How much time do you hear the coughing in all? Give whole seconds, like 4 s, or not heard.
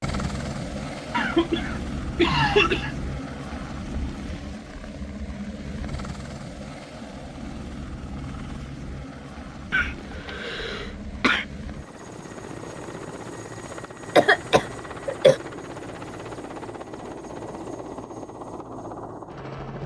5 s.